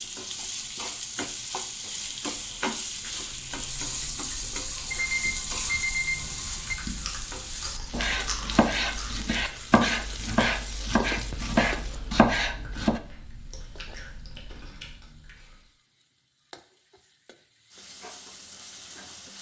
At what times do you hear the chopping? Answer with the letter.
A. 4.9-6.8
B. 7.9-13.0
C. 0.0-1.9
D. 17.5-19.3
B.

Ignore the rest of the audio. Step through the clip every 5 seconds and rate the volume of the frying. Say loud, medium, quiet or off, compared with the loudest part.
loud, loud, medium, quiet.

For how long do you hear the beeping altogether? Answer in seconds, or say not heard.
2 s.